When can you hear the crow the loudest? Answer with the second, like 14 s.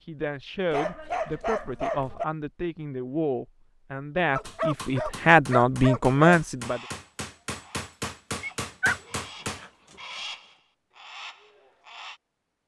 10 s.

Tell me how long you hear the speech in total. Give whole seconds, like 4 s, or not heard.
7 s.